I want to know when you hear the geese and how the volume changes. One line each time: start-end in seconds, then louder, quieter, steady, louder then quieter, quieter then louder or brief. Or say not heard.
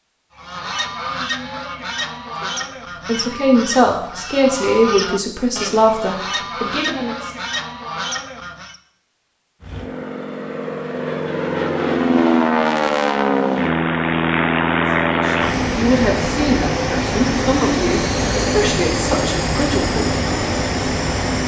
0.3-8.8 steady.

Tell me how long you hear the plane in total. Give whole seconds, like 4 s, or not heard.
12 s.